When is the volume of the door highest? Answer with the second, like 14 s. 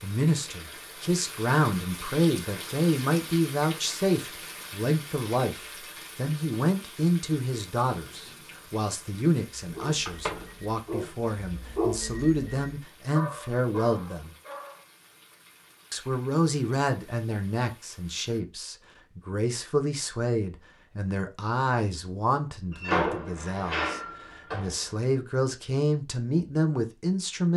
23 s.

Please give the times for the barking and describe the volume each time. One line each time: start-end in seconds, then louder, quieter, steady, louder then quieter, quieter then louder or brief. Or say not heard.
9.6-14.8 louder then quieter.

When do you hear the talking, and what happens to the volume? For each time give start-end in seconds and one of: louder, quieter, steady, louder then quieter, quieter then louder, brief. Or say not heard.
0.0-14.3 steady
15.9-27.5 quieter then louder.